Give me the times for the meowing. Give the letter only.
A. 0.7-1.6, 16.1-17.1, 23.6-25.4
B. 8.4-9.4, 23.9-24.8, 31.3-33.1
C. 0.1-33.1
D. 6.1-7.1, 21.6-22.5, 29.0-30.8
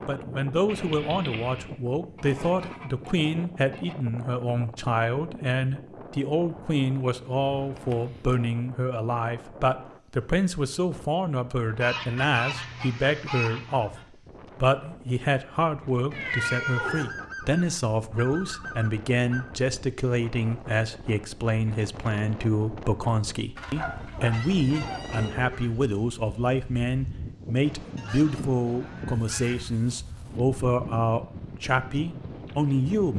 A.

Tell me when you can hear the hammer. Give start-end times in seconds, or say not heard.
not heard.